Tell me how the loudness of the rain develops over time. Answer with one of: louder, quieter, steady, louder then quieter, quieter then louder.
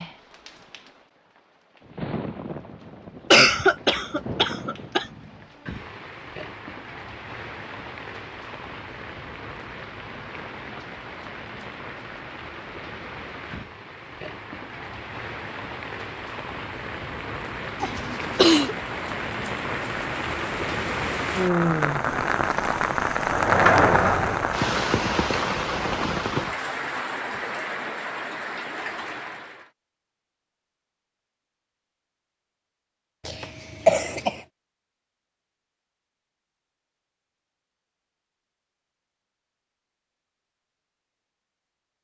louder.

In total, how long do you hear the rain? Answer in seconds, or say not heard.
30 s.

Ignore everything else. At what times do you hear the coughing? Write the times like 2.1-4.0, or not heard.
3.3-5.0, 17.8-18.8, 33.2-34.4.